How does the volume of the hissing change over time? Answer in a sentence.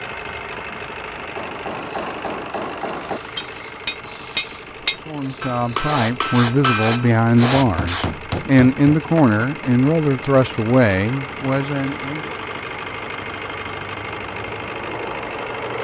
The loudness of the hissing goes up.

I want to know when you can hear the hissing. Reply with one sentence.
You can hear the hissing from 1.4 to 8.1 s.